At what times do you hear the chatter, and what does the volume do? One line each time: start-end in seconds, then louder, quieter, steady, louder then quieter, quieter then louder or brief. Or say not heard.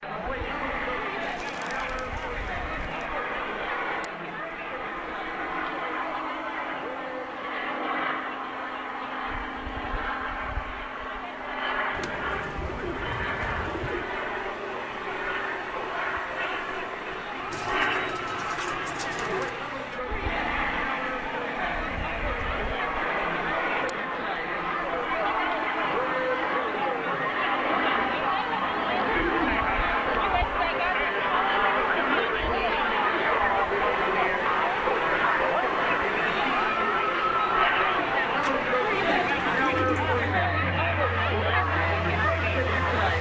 0.0-43.1 louder.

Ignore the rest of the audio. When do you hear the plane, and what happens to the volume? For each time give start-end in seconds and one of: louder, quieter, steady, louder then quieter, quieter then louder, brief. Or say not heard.
0.1-43.1 steady.